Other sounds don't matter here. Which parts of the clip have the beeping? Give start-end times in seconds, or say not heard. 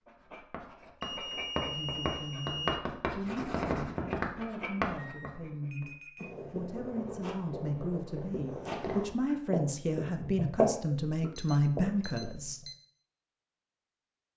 1.0-2.8, 5.0-6.2, 11.3-12.8.